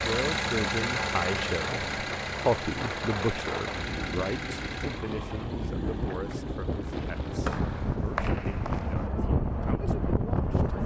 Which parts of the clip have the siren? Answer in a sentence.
You can't hear the siren here.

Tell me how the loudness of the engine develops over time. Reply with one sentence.
The volume of the engine goes down.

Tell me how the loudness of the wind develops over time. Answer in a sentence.
The loudness of the wind goes up.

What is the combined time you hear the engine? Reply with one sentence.
You can hear the engine for 8 seconds altogether.